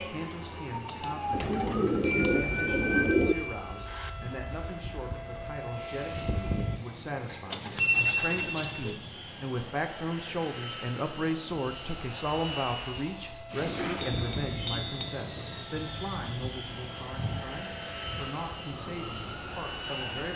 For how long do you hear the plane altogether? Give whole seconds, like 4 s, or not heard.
20 s.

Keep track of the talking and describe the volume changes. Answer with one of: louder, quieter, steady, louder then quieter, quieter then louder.
louder then quieter.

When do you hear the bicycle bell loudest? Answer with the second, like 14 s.
8 s.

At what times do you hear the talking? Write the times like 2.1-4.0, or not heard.
0.0-20.3.